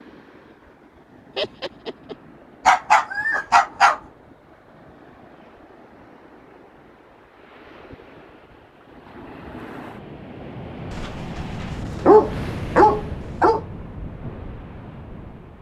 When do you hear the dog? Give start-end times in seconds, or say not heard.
2.6-4.0, 10.9-13.6.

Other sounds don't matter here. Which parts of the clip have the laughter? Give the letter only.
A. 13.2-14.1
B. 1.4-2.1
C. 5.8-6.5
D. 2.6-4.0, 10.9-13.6
B.